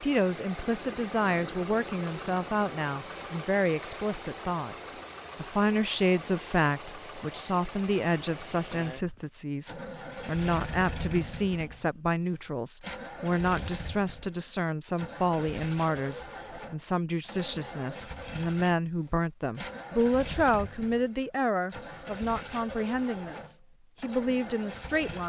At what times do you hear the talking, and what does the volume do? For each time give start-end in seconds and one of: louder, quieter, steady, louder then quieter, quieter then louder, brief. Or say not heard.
0.0-25.2 steady.